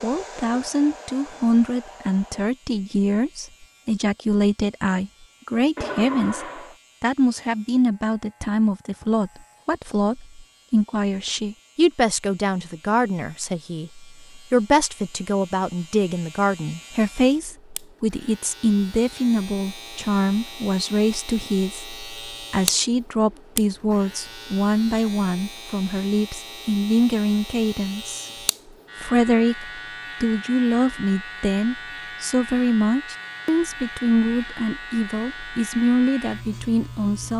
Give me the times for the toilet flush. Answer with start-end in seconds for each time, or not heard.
5.8-6.8.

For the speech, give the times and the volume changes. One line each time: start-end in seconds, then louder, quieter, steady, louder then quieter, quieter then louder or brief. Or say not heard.
0.0-28.2 steady
29.0-37.3 steady.